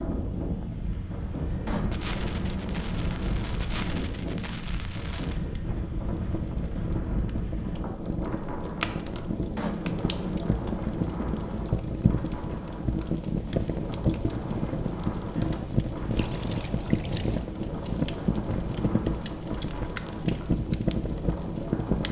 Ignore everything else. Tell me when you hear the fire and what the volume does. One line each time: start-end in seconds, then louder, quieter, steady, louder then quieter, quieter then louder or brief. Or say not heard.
0.0-22.0 louder.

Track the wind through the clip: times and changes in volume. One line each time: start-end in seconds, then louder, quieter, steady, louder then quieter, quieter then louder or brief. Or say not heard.
0.0-22.0 steady.